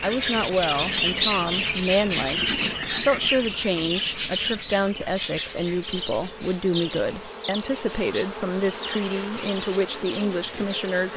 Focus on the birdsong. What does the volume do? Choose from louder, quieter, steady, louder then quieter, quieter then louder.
quieter.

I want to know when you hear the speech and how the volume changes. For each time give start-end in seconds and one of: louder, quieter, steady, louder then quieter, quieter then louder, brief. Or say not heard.
0.0-11.1 steady.